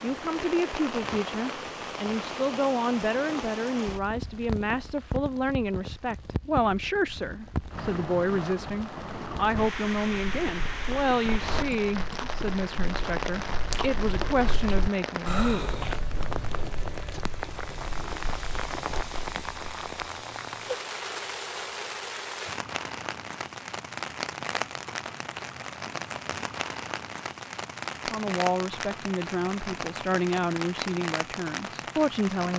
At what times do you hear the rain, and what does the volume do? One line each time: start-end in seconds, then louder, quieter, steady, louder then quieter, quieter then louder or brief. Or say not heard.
0.0-32.5 steady.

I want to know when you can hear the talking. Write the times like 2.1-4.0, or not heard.
0.0-15.8, 28.1-32.5.